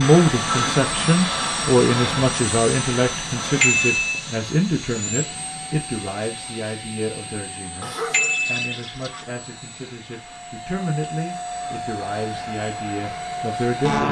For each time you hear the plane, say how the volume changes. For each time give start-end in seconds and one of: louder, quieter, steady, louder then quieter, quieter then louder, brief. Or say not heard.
0.0-14.0 quieter then louder.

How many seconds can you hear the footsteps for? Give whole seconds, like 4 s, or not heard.
not heard.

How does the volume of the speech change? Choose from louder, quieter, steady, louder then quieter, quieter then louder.
quieter.